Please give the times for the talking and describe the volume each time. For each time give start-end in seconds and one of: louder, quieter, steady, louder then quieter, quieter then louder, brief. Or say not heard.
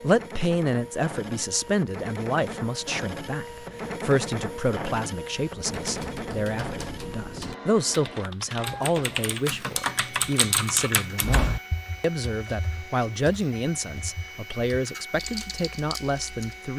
0.0-16.7 steady.